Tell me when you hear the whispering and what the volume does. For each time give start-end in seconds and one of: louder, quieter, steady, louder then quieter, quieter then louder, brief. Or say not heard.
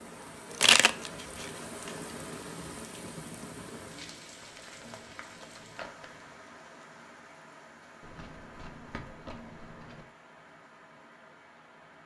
not heard.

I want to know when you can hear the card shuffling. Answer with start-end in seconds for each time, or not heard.
0.5-1.9, 4.4-6.2, 8.0-10.1.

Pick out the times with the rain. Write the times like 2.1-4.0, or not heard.
0.0-12.0.